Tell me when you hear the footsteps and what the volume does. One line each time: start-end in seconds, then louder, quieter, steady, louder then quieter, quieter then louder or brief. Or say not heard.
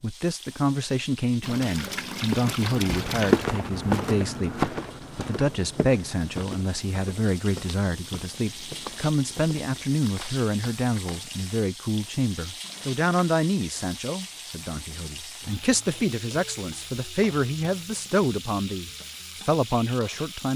2.2-11.2 quieter.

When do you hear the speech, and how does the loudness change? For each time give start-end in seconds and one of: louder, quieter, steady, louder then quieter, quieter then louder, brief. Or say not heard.
0.0-20.5 steady.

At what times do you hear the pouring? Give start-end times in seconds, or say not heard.
1.4-3.5, 12.6-13.3.